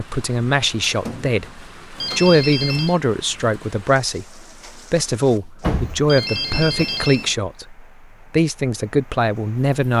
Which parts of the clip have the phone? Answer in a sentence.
The phone can be heard from 1.9 to 3.0 s and from 6.0 to 7.3 s.